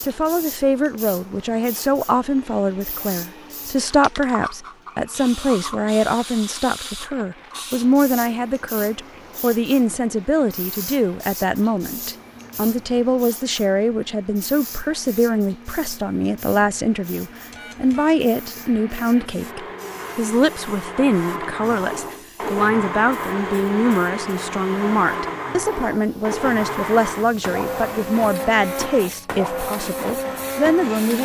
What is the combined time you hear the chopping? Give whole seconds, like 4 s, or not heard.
not heard.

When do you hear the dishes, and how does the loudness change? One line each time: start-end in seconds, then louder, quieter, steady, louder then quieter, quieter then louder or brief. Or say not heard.
not heard.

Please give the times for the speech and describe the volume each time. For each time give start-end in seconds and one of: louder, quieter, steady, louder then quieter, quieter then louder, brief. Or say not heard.
0.0-31.2 steady.